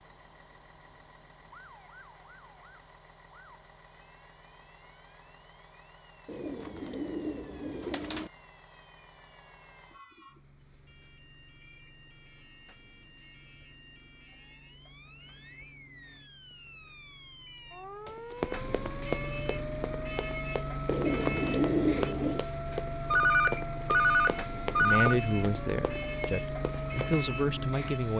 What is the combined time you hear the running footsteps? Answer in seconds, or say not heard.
9 s.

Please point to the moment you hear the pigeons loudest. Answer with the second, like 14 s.
22 s.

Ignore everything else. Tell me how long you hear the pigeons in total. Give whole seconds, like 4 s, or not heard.
4 s.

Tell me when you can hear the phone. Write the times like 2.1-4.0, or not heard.
23.1-25.1.